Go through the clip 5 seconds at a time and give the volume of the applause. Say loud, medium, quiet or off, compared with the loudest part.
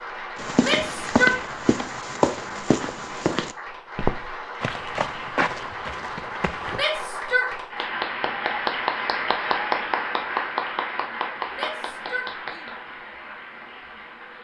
medium, loud, loud.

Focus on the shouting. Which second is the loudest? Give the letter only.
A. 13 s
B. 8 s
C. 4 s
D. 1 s
D.